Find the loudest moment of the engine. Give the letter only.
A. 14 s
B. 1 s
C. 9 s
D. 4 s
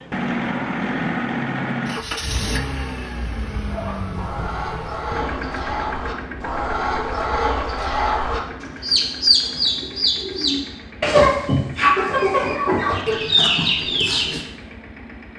B.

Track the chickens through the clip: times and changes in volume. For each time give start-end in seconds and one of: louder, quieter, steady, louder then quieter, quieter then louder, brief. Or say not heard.
3.6-14.4 louder.